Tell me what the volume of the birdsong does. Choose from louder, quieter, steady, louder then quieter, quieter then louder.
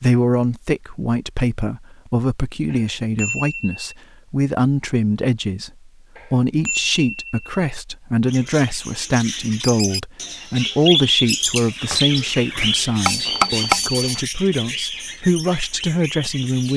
louder then quieter.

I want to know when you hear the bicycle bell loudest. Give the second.
14 s.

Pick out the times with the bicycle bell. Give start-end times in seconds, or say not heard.
2.7-4.0, 6.2-7.5, 13.1-14.2.